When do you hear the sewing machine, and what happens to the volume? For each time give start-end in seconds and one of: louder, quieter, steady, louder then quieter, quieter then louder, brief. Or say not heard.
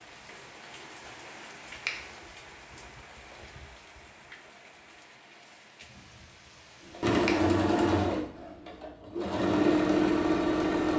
6.8-10.9 quieter then louder.